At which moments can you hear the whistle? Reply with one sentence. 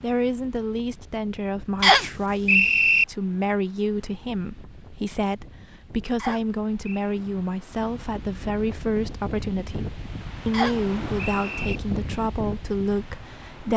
The whistle can be heard from 1.8 to 3.0 s, from 6.2 to 7.2 s and from 10.5 to 11.8 s.